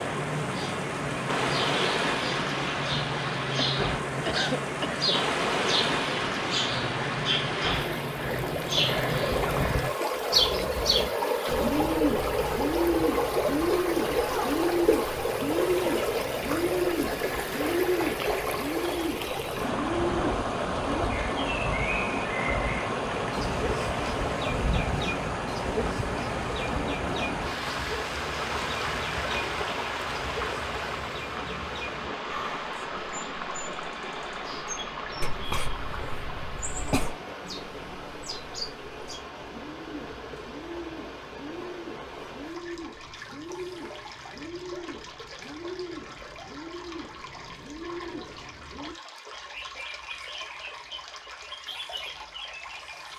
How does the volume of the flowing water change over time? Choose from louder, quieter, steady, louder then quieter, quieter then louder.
quieter.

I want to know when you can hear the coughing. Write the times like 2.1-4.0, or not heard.
3.6-5.1, 35.2-37.2.